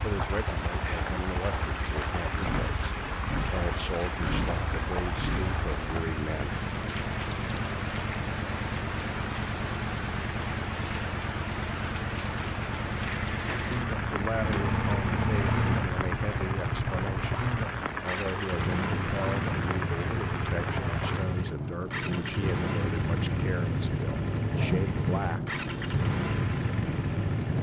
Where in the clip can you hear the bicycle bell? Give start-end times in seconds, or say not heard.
not heard.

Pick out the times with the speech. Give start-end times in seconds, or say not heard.
0.0-6.6, 14.1-25.6.